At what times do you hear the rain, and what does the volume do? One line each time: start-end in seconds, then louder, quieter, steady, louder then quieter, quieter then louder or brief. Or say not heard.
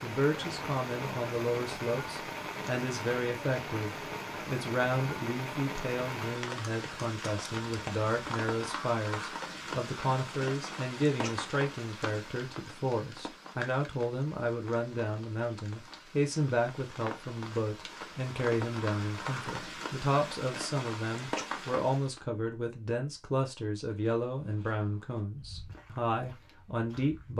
0.0-22.2 quieter then louder.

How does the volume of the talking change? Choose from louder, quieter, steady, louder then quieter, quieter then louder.
steady.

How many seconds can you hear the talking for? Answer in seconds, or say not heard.
27 s.